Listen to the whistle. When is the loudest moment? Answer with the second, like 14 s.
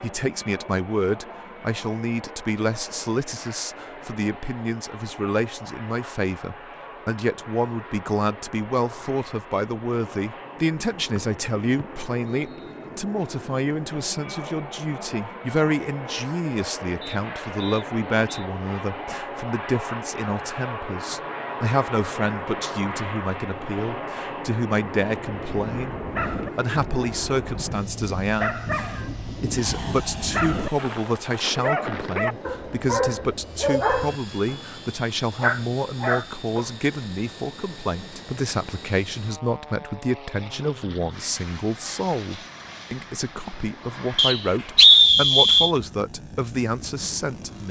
45 s.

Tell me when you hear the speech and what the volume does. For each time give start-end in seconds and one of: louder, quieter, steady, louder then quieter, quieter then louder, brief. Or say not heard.
0.0-47.6 steady.